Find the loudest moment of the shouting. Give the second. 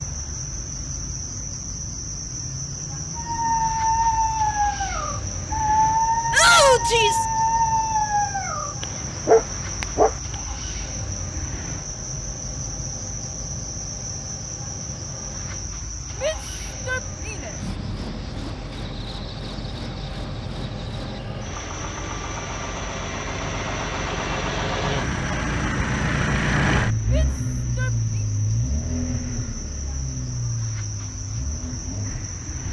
7 s.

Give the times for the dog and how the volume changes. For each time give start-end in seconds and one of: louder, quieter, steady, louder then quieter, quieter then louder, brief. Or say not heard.
3.1-10.3 steady.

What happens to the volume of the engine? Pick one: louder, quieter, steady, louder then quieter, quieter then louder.
louder.